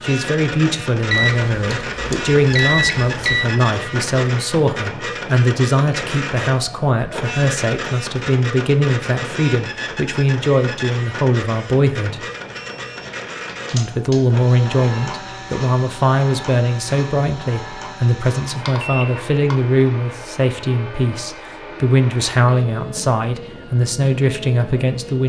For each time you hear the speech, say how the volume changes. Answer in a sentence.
The speech can be heard from 0.0 to 12.2 s, at a steady volume; and from 13.7 to 25.2 s, at a steady volume.